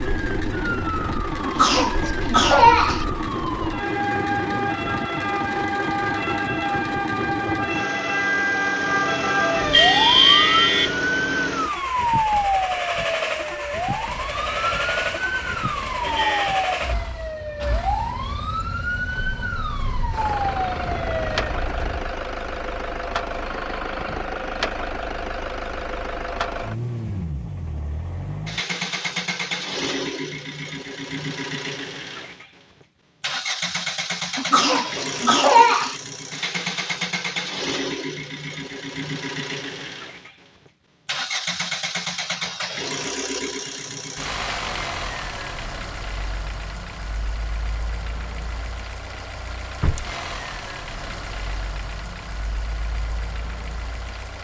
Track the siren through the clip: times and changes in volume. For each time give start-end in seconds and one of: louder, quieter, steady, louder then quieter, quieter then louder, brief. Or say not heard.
0.0-22.1 louder then quieter.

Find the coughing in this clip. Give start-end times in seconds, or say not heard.
1.4-3.0, 34.4-36.0.